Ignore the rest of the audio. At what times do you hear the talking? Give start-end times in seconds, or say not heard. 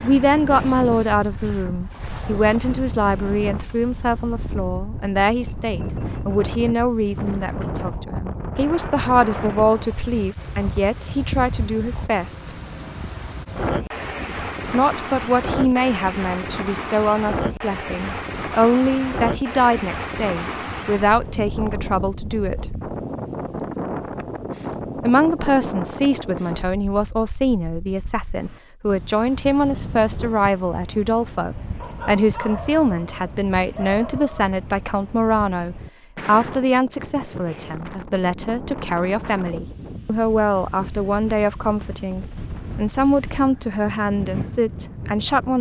0.0-12.6, 14.7-22.8, 25.0-45.5.